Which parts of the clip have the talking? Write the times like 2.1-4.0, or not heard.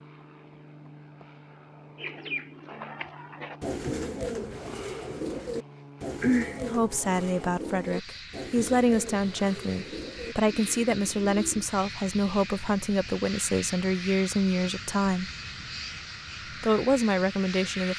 6.5-15.3, 16.6-17.9.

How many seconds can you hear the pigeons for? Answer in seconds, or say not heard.
10 s.